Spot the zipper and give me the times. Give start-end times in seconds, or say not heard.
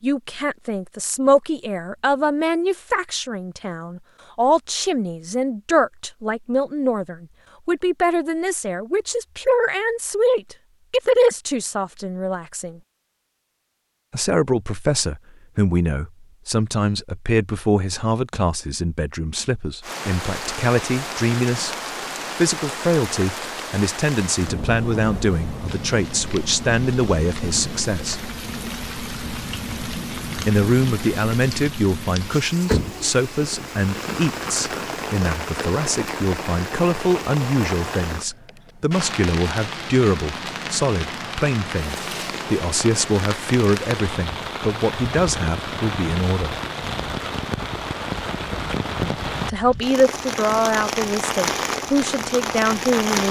not heard.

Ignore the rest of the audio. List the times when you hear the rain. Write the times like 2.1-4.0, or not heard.
19.8-53.2.